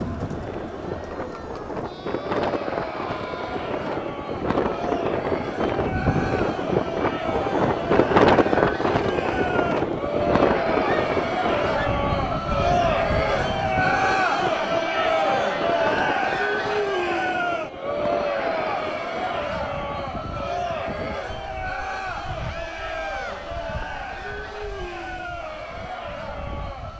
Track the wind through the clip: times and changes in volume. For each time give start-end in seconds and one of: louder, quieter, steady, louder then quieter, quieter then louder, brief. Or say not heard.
0.0-26.9 louder then quieter.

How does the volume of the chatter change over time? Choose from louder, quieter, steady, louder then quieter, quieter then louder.
louder then quieter.